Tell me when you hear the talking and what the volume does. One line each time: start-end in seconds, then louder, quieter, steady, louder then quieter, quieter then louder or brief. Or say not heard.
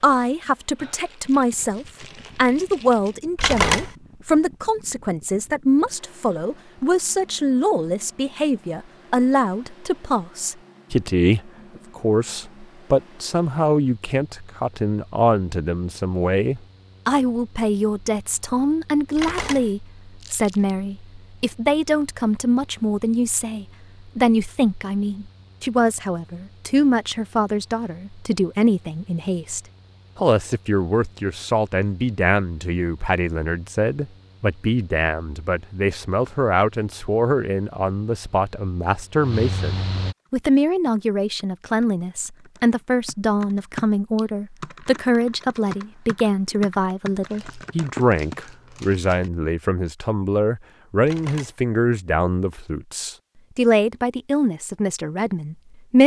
0.0-56.0 steady.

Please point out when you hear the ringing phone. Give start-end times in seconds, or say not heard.
3.4-3.9, 19.1-19.7, 51.0-51.5.